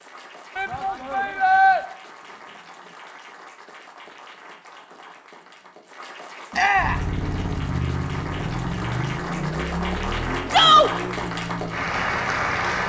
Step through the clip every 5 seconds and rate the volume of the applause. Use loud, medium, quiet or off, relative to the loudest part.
quiet, medium, loud.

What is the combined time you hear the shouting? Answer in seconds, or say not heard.
2 s.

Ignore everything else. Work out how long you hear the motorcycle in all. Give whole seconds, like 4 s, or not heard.
6 s.